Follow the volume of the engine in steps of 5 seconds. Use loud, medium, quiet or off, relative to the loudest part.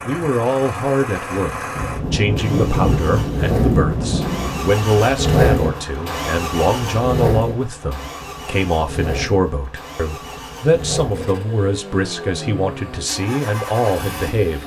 medium, loud, medium.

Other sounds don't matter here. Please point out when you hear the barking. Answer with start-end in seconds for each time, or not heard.
not heard.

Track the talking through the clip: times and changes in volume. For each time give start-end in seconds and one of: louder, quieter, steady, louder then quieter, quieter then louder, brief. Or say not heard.
0.1-14.6 steady.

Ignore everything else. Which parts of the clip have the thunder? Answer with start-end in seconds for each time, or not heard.
1.8-4.7.